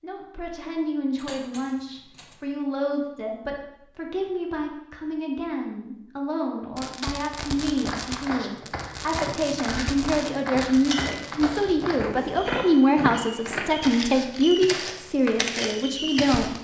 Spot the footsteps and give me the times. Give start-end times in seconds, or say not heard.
7.8-16.5.